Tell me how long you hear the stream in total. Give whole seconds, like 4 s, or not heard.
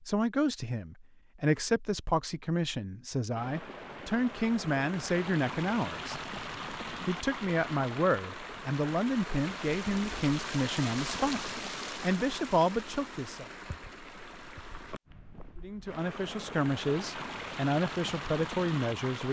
16 s.